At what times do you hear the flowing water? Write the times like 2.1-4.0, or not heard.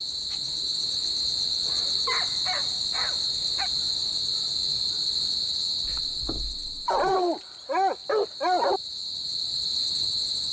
not heard.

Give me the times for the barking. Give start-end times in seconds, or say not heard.
1.9-3.7, 6.8-8.8.